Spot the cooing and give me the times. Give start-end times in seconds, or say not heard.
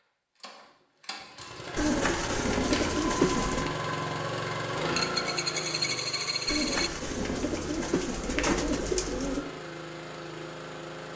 1.8-3.7, 6.5-9.4.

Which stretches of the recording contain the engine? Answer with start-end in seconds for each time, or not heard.
0.4-11.1.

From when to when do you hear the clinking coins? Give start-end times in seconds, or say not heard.
5.0-6.9.